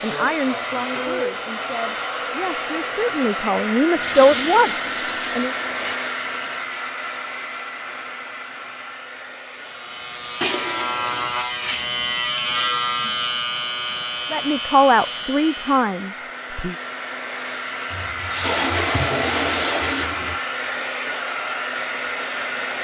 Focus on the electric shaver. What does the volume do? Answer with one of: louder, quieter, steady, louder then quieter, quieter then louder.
louder then quieter.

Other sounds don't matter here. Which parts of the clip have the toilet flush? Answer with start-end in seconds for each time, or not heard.
4.0-6.0, 10.4-11.3, 17.9-20.4.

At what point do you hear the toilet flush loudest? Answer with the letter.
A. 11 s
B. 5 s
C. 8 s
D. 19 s
D.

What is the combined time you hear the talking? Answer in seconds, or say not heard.
8 s.